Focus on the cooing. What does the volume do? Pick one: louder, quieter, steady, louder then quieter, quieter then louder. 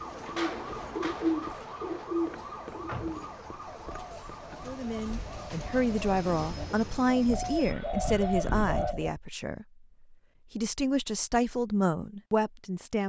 quieter then louder.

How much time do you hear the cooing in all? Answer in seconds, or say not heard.
9 s.